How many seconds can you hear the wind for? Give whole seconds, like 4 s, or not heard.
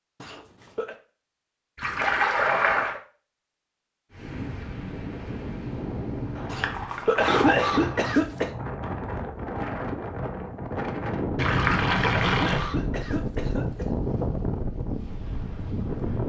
12 s.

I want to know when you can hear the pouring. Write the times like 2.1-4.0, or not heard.
1.8-3.0, 6.3-8.2, 11.3-12.7.